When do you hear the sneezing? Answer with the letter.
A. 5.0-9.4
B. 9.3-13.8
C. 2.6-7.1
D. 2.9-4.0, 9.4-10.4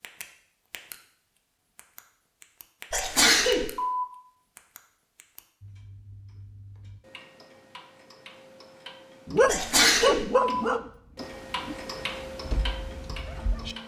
D.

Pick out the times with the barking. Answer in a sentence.
The barking can be heard from 9.3 to 13.8 s.